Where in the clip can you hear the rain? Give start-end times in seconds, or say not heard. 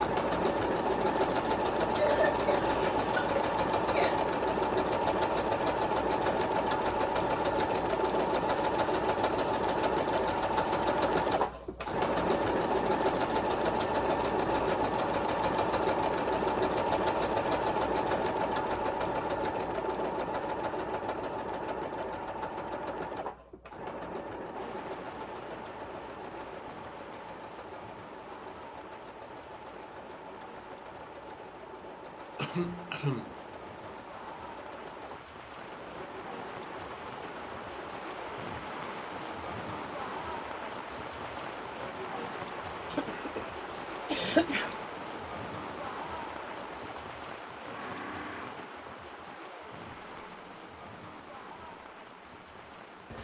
24.5-53.2.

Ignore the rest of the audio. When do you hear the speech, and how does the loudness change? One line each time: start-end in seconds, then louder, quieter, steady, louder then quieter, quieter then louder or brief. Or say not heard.
not heard.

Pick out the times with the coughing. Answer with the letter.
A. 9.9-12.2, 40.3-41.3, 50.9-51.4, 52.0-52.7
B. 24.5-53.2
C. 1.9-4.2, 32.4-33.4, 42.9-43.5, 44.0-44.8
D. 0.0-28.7
C.